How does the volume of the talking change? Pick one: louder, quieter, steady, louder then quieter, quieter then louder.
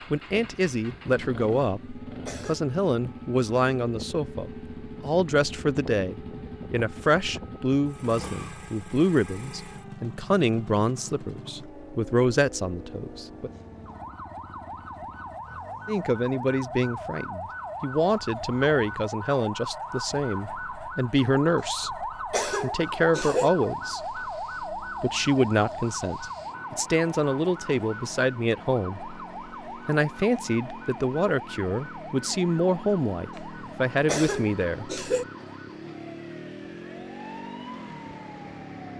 steady.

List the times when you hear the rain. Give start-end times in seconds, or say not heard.
not heard.